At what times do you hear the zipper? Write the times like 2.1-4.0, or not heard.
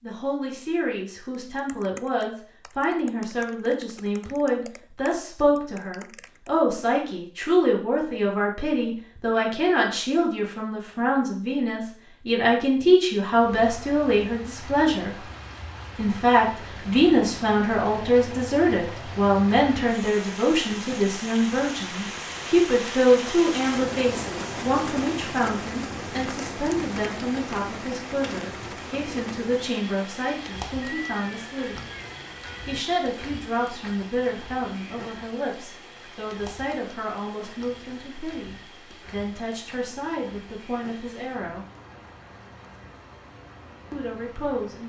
not heard.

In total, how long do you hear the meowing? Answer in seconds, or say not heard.
2 s.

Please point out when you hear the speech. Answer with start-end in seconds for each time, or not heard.
0.0-15.2, 15.9-31.8, 32.6-41.6, 43.9-44.8.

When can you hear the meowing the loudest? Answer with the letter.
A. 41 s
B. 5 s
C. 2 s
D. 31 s
D.